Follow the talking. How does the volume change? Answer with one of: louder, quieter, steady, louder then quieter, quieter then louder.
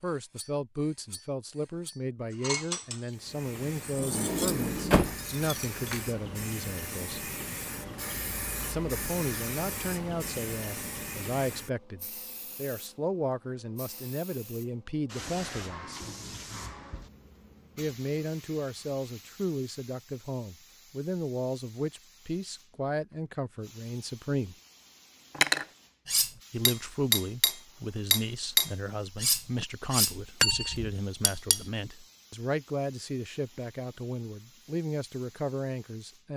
steady.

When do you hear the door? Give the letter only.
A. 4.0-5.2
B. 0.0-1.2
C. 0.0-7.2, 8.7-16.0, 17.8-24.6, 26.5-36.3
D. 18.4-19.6
A.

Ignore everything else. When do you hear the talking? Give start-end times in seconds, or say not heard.
0.0-7.2, 8.7-16.0, 17.8-24.6, 26.5-36.3.